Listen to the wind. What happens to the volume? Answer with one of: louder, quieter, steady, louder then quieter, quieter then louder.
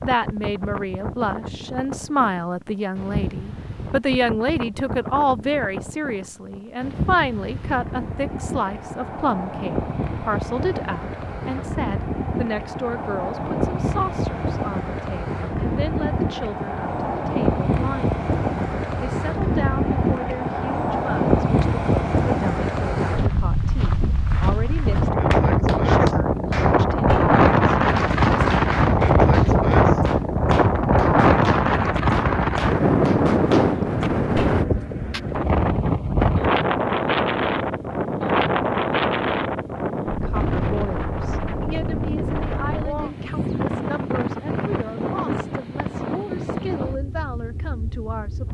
louder then quieter.